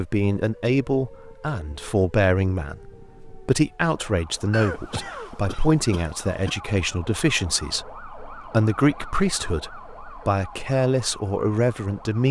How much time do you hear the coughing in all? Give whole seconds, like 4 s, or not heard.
2 s.